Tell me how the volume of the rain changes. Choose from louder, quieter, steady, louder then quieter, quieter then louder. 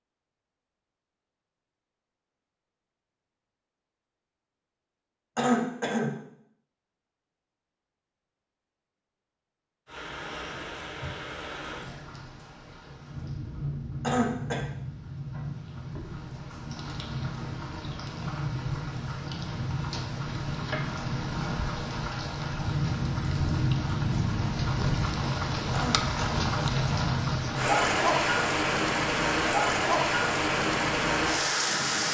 louder.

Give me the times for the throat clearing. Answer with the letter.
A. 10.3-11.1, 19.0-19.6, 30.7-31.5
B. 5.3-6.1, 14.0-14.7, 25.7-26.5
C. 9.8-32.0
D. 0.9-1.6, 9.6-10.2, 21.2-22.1
B.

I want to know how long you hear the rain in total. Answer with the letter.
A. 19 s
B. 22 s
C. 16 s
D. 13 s
B.